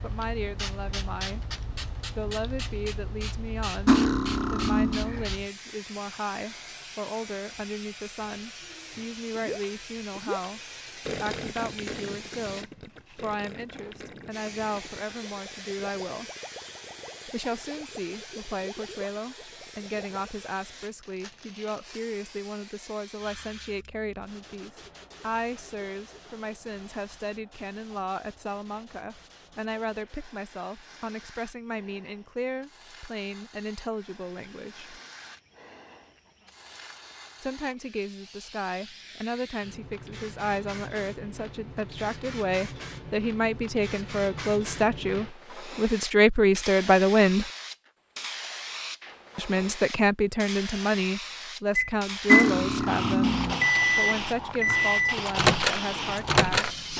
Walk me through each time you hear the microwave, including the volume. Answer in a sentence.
You can hear the microwave from 51.8 to 56.9 s, at a steady volume.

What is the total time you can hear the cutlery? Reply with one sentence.
The cutlery can be heard for 3 seconds in total.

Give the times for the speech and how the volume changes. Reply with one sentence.
The speech can be heard briefly from 0.0 to 1.4 s; from 2.1 to 16.3 s, at a steady volume; from 17.2 to 35.0 s, at a steady volume; from 37.4 to 47.5 s, getting louder; and from 49.4 to 56.8 s, getting quieter.